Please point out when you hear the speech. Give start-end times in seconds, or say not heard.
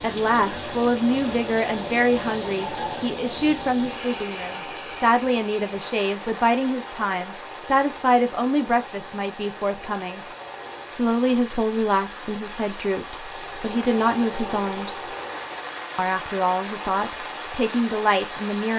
0.0-10.2, 10.9-15.1, 15.9-18.7.